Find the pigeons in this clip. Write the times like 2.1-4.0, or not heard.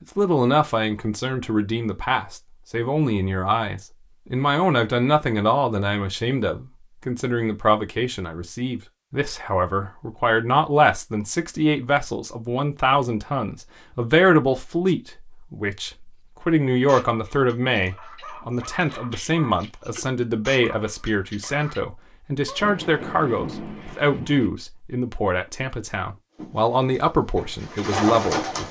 26.4-28.6.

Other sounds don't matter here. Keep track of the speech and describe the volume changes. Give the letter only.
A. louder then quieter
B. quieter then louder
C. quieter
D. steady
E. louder
D.